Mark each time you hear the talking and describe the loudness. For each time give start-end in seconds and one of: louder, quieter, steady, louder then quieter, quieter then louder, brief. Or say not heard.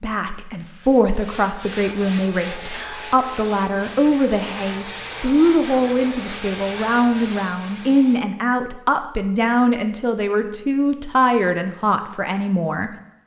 0.0-12.9 steady.